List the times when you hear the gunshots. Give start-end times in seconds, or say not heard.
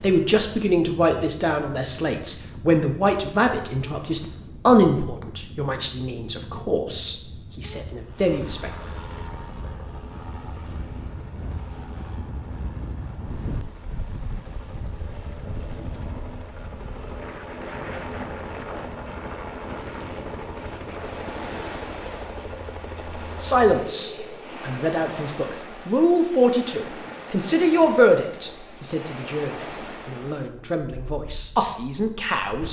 not heard.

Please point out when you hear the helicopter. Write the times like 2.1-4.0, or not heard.
8.1-24.5.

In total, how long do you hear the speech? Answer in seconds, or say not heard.
18 s.